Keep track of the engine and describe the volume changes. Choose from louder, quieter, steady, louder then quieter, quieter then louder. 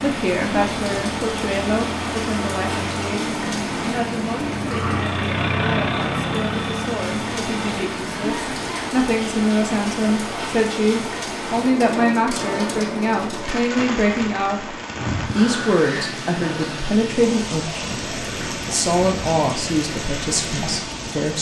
louder then quieter.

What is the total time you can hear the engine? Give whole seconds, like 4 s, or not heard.
9 s.